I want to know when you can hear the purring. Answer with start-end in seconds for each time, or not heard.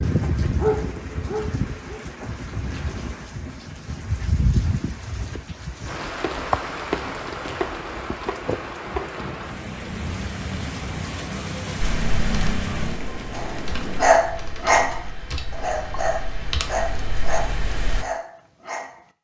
not heard.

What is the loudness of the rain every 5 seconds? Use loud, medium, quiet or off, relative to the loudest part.
loud, loud, loud, off.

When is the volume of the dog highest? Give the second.
14 s.